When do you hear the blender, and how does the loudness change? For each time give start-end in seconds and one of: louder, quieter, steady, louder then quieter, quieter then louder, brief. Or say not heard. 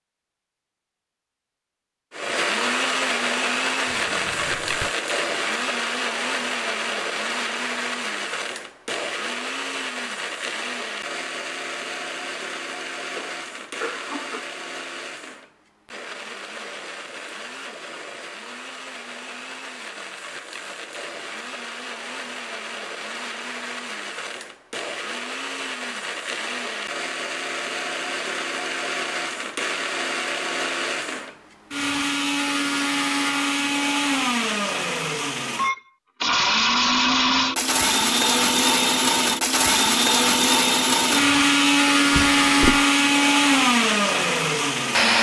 2.1-45.1 quieter then louder.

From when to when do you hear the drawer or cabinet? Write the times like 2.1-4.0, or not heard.
3.9-4.9, 42.1-42.9.